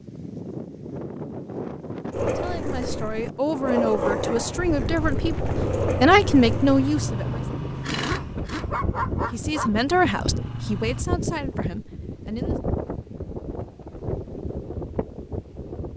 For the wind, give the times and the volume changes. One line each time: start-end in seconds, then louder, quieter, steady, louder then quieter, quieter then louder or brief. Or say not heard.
0.0-15.9 steady.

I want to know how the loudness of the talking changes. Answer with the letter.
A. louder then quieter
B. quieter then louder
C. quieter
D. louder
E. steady
A.